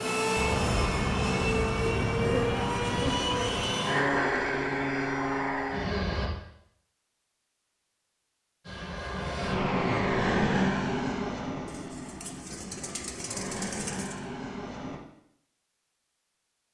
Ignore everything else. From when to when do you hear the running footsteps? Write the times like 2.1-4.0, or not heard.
not heard.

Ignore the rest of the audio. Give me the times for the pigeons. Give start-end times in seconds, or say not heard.
11.7-14.2.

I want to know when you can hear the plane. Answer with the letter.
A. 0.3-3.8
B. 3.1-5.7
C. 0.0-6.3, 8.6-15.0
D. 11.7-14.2
C.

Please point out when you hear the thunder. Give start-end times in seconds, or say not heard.
0.3-3.8.